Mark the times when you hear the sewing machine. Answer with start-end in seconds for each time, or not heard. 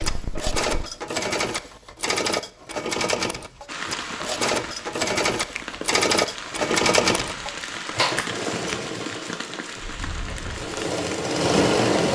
0.0-12.1.